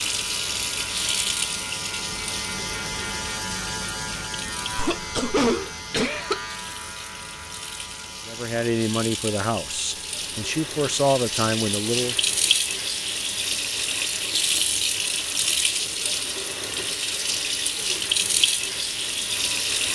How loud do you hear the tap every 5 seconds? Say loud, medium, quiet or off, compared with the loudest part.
medium, medium, loud, loud.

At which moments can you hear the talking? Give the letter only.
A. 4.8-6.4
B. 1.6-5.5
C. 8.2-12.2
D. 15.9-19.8
C.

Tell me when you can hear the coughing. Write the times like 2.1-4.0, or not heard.
4.8-6.4.